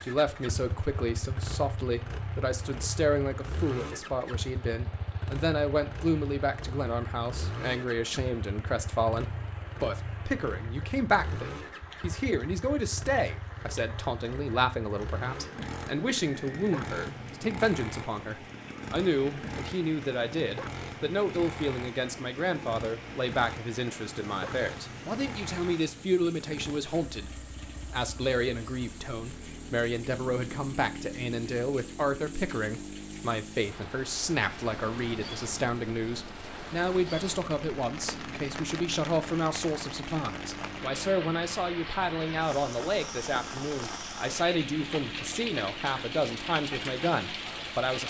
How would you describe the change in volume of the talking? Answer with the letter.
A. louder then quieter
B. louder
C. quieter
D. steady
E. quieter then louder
D.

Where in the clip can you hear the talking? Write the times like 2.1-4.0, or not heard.
0.0-48.0.